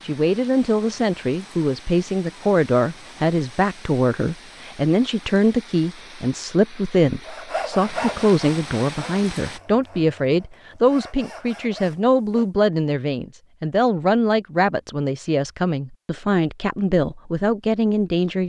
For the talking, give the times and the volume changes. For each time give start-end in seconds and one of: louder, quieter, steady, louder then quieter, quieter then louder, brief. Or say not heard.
0.0-18.4 steady.